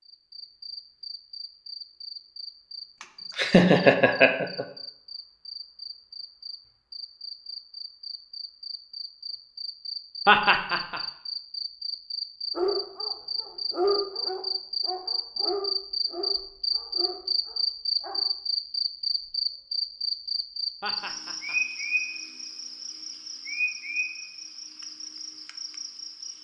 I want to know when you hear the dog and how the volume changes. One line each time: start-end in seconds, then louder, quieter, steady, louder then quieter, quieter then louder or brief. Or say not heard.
12.6-18.1 quieter.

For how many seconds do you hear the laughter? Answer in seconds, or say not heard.
3 s.